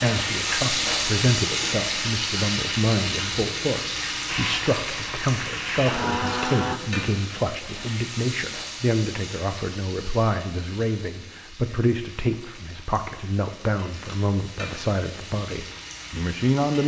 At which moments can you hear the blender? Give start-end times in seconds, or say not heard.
4.2-6.8.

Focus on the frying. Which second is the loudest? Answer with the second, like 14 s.
1 s.